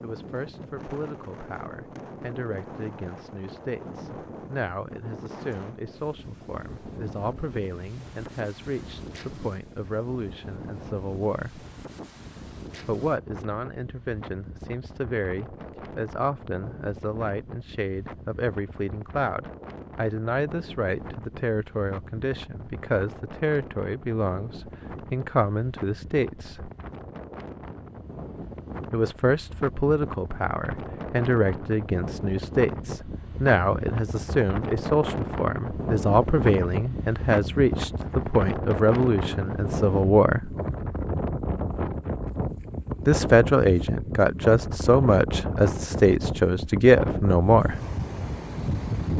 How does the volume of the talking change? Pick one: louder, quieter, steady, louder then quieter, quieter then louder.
louder.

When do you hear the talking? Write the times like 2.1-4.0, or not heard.
0.0-11.7, 12.8-26.7, 28.9-40.5, 43.0-47.8.